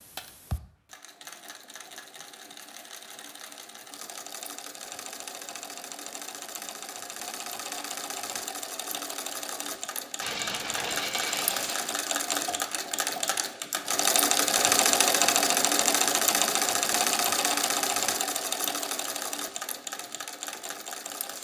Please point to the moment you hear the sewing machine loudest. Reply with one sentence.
The volume of the sewing machine peaks at 15 seconds.